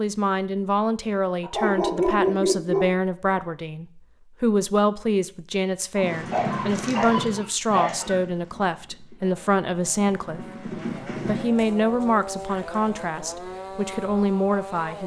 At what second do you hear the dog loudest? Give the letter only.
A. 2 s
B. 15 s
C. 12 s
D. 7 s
A.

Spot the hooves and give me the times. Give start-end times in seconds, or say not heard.
6.0-11.5.